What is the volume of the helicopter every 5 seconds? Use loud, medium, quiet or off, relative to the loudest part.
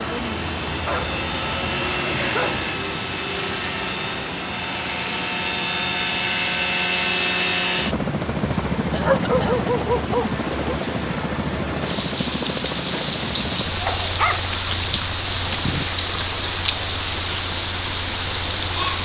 medium, loud, medium, quiet.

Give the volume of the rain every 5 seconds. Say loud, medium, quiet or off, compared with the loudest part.
loud, medium, loud, loud.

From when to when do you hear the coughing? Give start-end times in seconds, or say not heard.
8.9-9.7.